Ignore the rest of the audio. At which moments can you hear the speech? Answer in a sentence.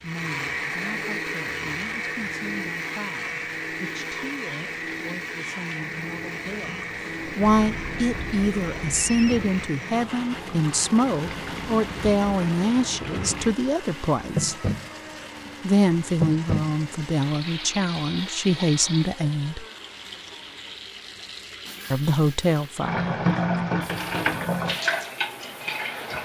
You can hear the speech from 0.0 to 14.6 s, from 15.6 to 19.6 s and from 21.9 to 23.1 s.